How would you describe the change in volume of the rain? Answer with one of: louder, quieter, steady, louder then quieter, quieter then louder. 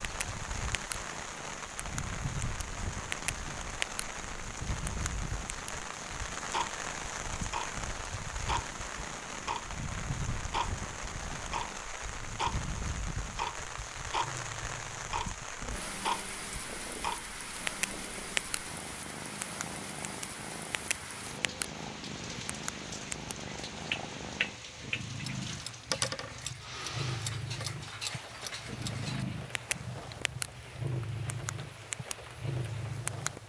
quieter.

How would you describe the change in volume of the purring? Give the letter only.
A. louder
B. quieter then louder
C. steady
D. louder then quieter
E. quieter
A.